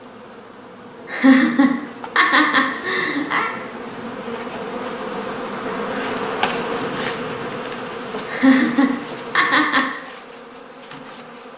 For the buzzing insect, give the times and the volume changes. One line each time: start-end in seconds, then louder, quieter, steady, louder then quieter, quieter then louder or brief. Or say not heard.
0.0-11.5 louder then quieter.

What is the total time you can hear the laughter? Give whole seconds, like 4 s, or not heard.
4 s.